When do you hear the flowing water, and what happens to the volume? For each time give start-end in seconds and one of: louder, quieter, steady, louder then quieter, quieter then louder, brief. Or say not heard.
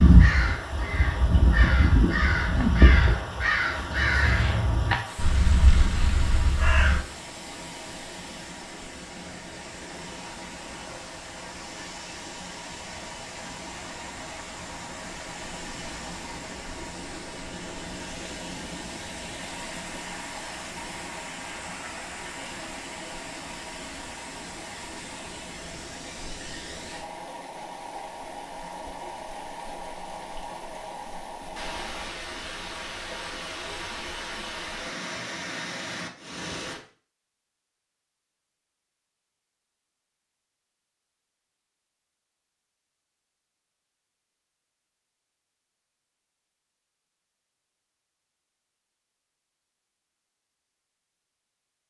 0.0-36.8 steady.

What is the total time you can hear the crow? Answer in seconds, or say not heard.
7 s.